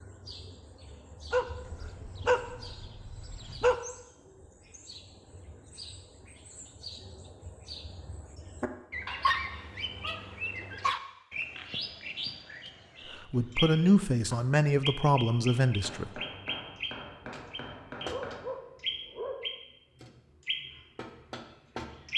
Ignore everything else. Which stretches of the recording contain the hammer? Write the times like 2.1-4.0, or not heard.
15.6-18.5.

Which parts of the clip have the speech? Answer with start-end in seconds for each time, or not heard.
13.2-16.2.